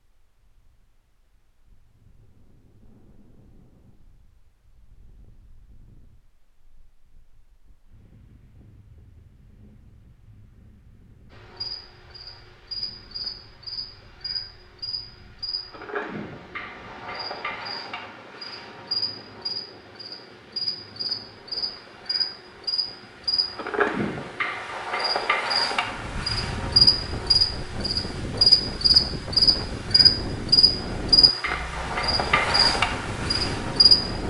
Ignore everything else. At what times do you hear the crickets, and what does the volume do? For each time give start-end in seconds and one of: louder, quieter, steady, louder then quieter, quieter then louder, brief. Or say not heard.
11.3-34.2 louder.